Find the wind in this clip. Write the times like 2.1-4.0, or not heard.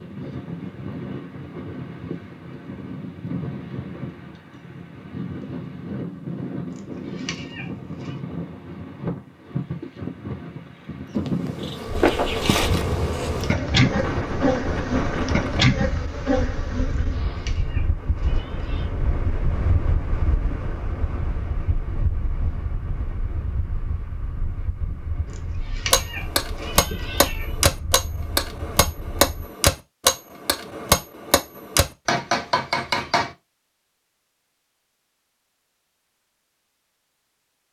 0.0-29.5.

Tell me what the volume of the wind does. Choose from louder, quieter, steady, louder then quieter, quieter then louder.
quieter.